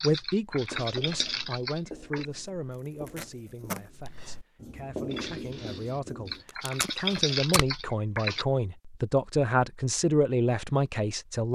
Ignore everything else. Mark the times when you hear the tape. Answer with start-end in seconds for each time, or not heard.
2.7-3.9, 6.7-7.8.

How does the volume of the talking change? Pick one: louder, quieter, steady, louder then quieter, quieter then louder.
quieter then louder.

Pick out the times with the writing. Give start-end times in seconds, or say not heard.
0.5-6.5.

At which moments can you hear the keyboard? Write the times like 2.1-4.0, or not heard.
0.0-2.2, 5.1-8.4.